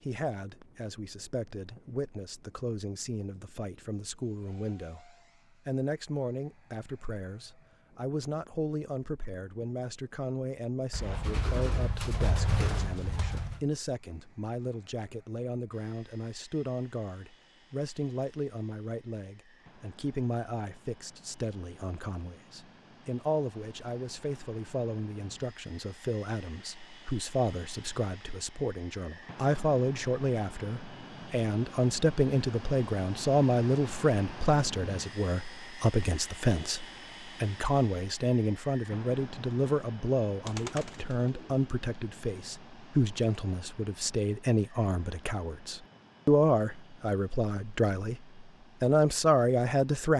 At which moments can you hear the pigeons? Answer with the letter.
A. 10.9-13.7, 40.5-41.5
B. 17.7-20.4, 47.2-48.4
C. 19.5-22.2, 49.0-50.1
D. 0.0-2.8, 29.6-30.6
A.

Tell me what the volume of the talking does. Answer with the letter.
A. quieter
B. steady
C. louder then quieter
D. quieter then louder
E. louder
E.